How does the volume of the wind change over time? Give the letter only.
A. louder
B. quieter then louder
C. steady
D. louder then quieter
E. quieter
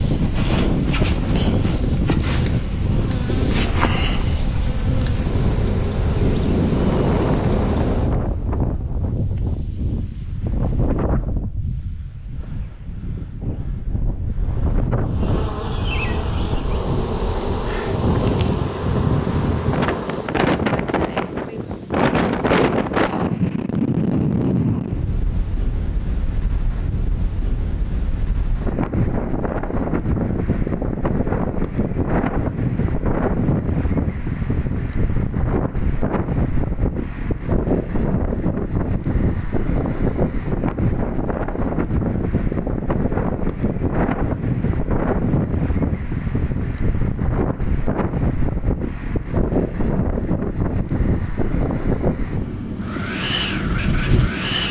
C.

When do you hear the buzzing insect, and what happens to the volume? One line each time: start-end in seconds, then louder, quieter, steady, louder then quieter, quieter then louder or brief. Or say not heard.
0.0-8.2 steady
15.1-20.4 steady.